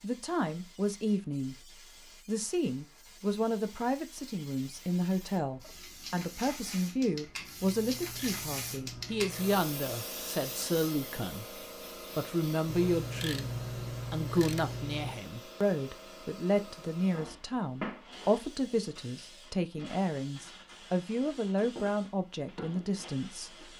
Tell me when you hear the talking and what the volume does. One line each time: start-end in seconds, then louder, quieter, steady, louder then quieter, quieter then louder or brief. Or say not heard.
0.0-23.6 steady.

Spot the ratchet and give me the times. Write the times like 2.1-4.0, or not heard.
7.6-9.7, 12.7-15.2.